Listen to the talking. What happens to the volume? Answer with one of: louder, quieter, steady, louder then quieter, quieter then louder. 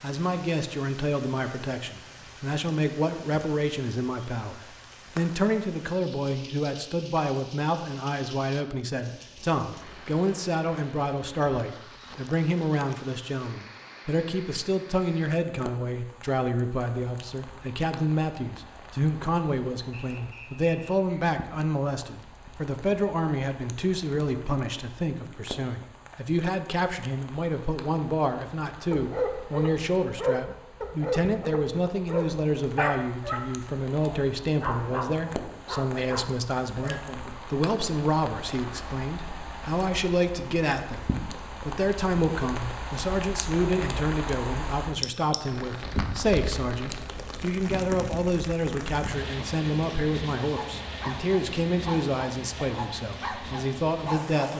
steady.